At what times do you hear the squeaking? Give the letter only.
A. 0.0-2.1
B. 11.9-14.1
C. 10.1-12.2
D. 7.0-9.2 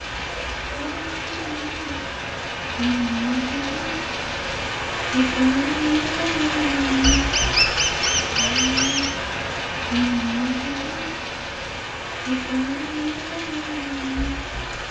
D.